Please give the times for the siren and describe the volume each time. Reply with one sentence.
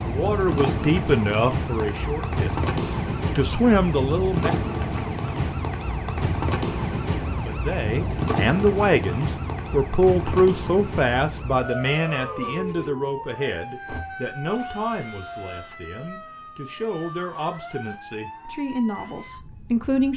The siren can be heard from 0.0 to 20.1 s, getting quieter.